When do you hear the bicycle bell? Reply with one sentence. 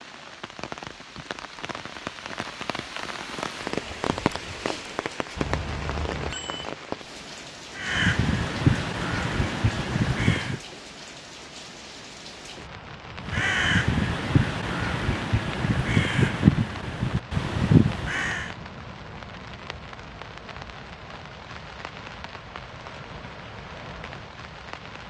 You can hear the bicycle bell from 5.3 to 6.8 s.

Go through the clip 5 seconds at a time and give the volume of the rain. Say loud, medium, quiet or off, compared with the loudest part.
loud, loud, medium, medium, medium.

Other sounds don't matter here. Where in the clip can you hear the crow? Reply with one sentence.
The crow can be heard from 7.8 to 10.6 s and from 13.2 to 18.5 s.